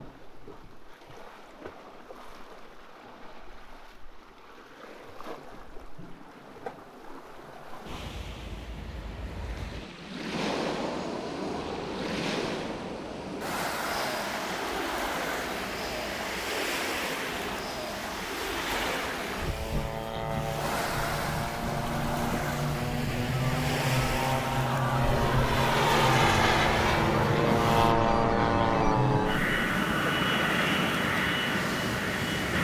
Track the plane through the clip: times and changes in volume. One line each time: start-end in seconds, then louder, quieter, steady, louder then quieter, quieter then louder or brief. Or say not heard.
10.3-32.5 louder.